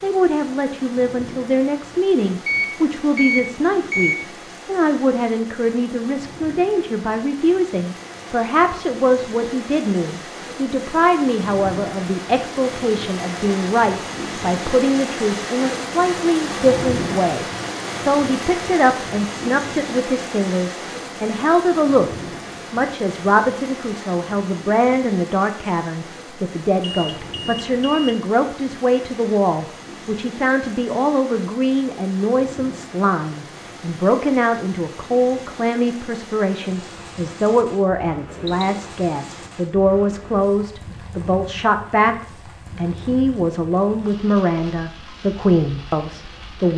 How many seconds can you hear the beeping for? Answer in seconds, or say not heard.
4 s.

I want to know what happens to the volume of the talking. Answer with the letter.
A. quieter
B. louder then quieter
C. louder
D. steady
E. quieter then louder
D.